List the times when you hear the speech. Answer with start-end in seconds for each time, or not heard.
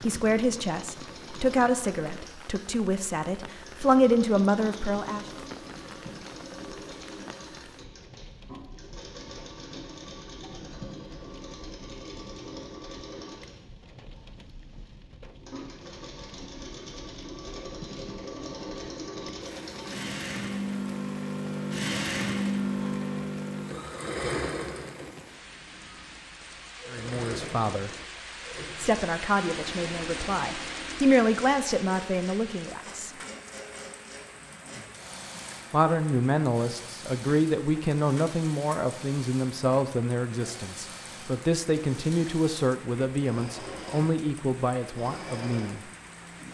0.0-5.3, 26.9-27.9, 28.8-33.1, 35.7-45.8.